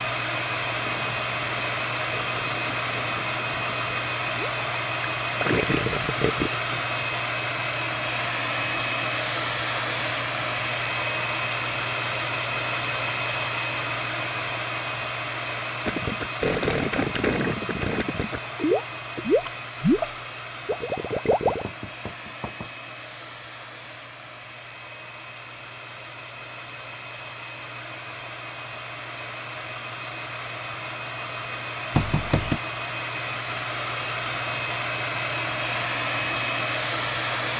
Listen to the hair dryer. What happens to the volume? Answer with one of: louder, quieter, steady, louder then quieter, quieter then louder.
quieter then louder.